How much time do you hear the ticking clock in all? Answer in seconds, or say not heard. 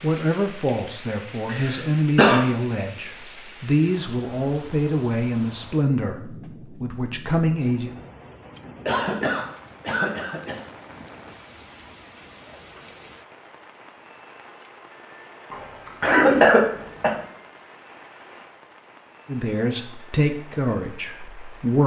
not heard.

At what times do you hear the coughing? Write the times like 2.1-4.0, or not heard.
1.4-2.4, 8.8-10.7, 15.5-17.1.